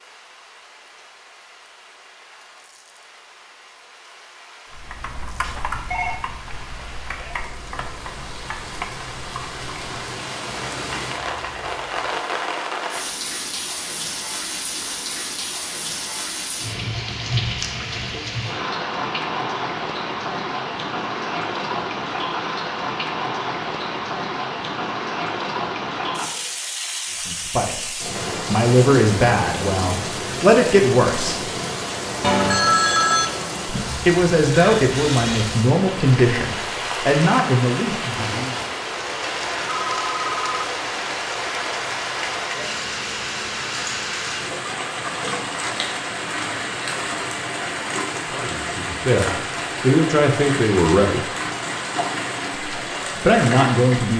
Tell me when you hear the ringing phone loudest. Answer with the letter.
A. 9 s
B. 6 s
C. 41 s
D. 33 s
D.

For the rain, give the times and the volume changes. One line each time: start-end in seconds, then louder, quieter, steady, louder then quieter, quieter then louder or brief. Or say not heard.
0.0-54.1 louder.